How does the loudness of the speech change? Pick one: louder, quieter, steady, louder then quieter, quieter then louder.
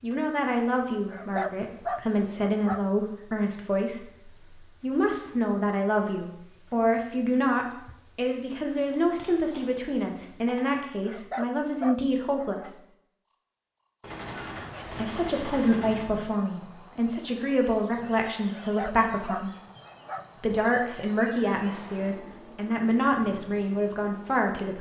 steady.